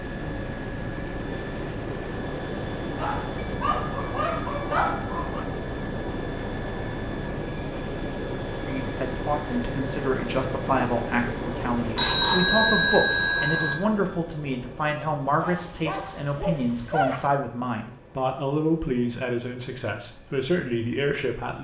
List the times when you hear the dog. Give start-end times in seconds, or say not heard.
3.0-5.5, 15.4-17.3.